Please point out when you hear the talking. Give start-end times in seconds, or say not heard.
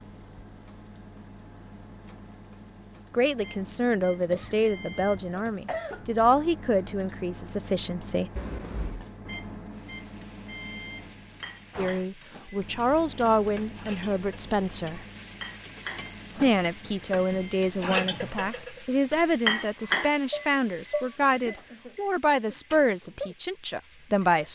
3.1-8.3, 11.8-15.0, 16.4-24.5.